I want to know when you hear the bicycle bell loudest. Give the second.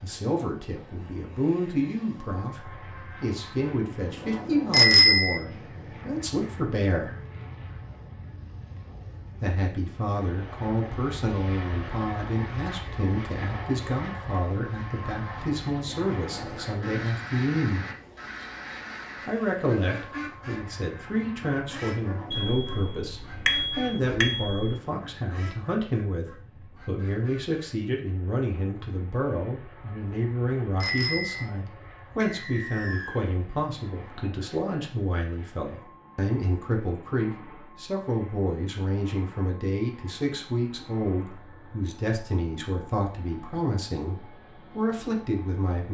5 s.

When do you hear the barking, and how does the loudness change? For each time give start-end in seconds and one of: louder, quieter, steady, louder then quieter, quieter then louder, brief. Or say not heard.
not heard.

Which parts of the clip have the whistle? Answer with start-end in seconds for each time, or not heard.
32.2-33.2.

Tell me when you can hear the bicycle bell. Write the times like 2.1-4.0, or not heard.
4.7-5.4, 22.3-24.6, 30.8-31.4.